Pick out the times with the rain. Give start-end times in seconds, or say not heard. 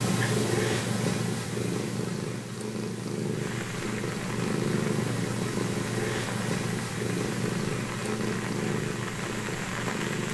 3.2-10.2.